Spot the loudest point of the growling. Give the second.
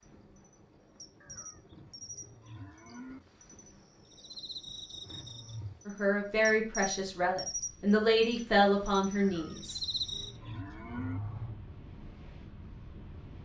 11 s.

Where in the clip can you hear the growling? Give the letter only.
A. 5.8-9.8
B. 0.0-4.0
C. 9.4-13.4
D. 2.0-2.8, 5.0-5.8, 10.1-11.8
D.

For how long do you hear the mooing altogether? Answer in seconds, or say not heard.
4 s.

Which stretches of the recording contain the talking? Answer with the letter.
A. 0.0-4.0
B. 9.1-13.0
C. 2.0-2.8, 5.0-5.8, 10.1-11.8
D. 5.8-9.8
D.